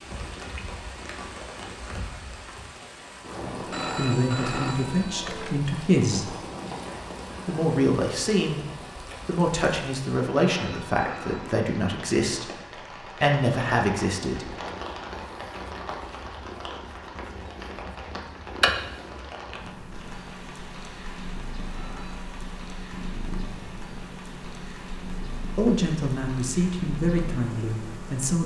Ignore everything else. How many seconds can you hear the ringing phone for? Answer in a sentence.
You can hear the ringing phone for 4 seconds altogether.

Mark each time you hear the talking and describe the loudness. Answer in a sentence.
You can hear the talking briefly from 3.4 to 6.3 s; briefly from 7.5 to 8.6 s; from 9.2 to 14.5 s, getting quieter then louder; and briefly from 25.6 to 28.4 s.